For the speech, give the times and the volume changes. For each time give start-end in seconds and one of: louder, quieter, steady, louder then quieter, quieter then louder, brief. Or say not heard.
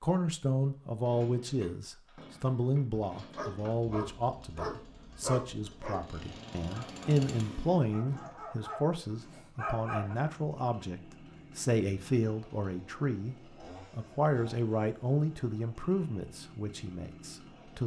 0.0-17.8 steady.